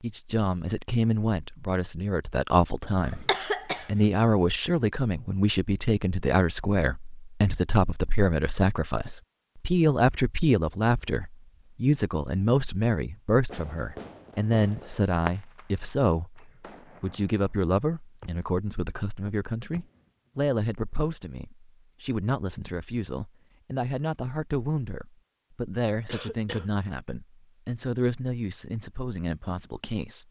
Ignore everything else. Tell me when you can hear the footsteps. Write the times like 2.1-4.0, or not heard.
not heard.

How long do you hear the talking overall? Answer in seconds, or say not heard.
30 s.